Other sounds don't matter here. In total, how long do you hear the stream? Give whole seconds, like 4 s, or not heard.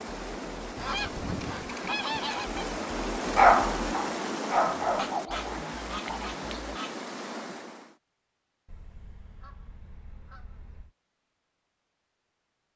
8 s.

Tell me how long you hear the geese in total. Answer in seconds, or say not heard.
6 s.